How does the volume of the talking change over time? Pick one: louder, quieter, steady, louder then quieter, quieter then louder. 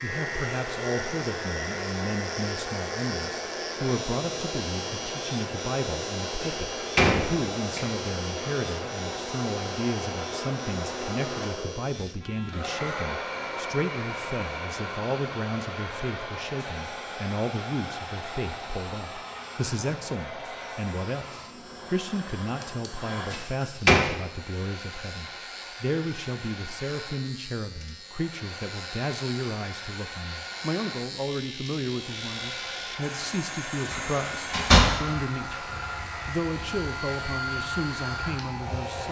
steady.